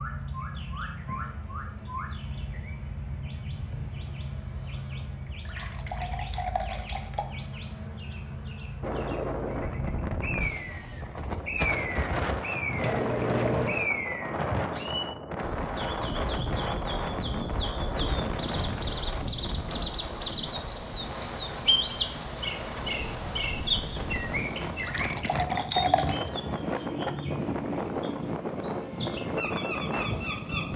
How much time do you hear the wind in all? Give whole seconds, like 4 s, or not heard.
22 s.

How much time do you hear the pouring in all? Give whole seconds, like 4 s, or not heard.
5 s.